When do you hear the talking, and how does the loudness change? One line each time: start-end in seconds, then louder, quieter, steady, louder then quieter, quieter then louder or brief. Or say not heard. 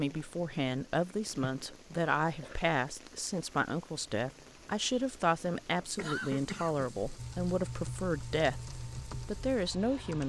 0.0-10.2 steady.